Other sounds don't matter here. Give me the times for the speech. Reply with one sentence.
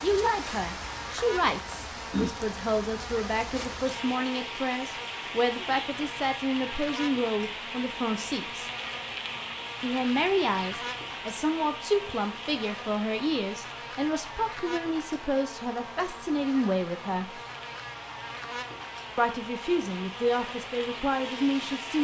You can hear the speech from 0.0 to 8.7 s, from 9.8 to 17.4 s and from 19.1 to 22.0 s.